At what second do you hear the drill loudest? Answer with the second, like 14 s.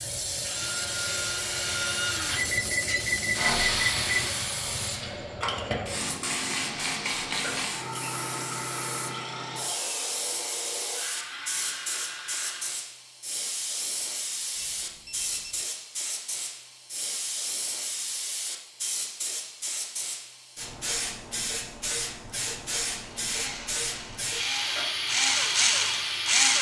26 s.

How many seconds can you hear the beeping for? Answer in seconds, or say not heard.
3 s.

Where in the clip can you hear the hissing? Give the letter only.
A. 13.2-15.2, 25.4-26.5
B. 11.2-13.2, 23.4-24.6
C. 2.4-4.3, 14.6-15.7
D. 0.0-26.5
D.